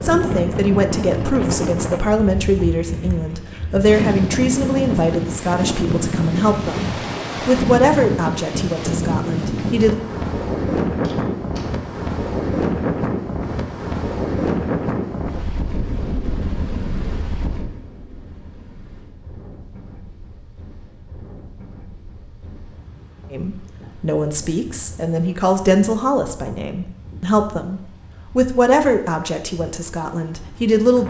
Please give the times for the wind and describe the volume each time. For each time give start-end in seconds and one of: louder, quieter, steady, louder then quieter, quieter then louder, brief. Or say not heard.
0.0-31.0 quieter.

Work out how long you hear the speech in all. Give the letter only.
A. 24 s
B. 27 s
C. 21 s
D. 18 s
D.